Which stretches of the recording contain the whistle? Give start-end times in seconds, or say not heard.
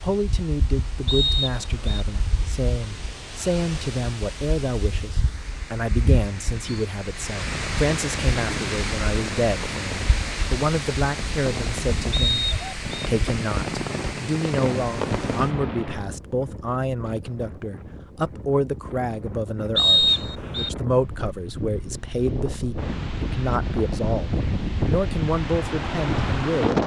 1.1-2.0, 12.1-12.8, 19.8-20.7.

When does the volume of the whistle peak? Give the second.
20 s.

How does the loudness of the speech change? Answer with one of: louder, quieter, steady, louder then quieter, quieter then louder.
steady.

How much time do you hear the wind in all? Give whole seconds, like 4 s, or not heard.
27 s.